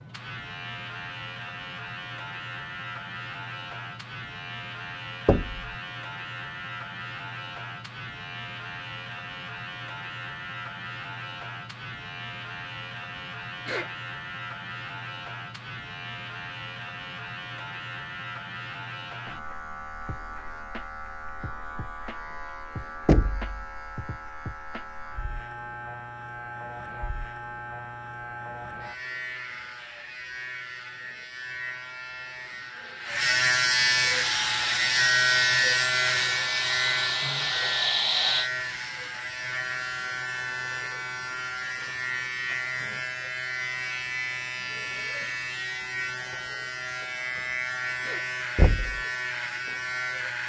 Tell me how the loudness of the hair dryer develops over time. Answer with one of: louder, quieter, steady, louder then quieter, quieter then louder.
louder.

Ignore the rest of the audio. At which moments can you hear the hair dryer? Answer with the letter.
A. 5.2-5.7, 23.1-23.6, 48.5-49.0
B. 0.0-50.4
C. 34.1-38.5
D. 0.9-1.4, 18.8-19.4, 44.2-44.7
C.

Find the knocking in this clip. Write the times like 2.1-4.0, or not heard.
5.2-5.7, 23.1-23.6, 48.5-49.0.